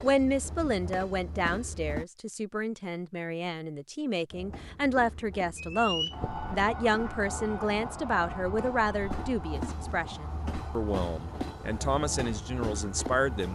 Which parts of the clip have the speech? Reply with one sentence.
You can hear the speech from 0.0 to 13.5 s.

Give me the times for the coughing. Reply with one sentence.
The coughing can't be heard in this clip.